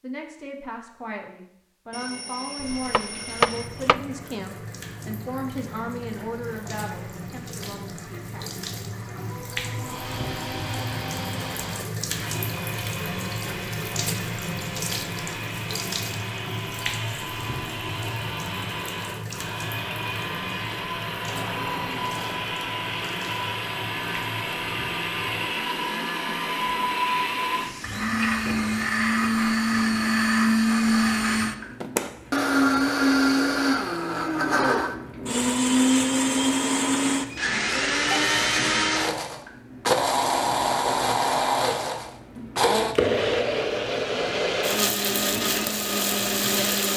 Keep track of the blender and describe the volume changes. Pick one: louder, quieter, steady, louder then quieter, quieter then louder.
louder.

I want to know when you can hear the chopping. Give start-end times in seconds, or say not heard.
2.6-4.0.